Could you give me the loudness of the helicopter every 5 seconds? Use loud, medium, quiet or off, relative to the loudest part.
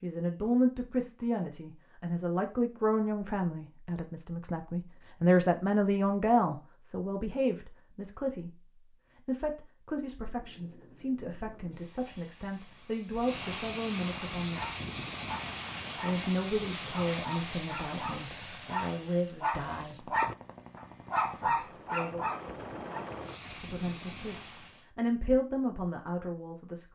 off, off, loud, loud, medium, off.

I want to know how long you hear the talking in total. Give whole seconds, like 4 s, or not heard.
22 s.